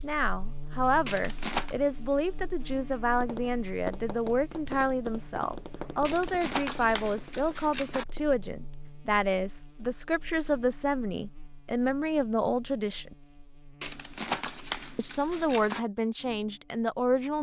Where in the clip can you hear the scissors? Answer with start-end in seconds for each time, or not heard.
1.1-1.8, 6.0-8.1, 13.8-15.8.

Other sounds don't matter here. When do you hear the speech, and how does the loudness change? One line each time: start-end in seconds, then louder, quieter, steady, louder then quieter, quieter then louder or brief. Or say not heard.
0.0-13.2 steady
14.9-17.3 brief.